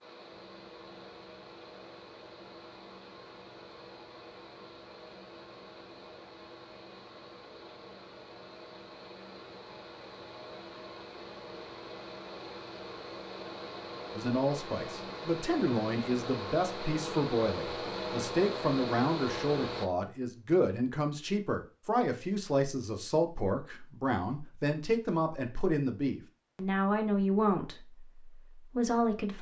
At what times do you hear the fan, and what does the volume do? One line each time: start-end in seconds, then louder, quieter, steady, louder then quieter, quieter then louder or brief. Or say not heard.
0.0-19.9 louder.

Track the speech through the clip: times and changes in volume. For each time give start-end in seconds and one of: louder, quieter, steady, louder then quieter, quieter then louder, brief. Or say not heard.
14.1-29.3 steady.